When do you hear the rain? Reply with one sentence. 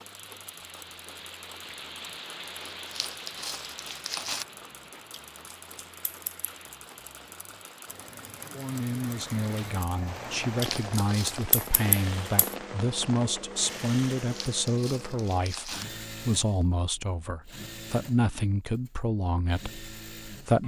The rain can be heard from 0.0 to 14.8 s.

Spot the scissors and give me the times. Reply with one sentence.
The scissors can be heard from 5.1 to 6.5 s and from 10.6 to 12.6 s.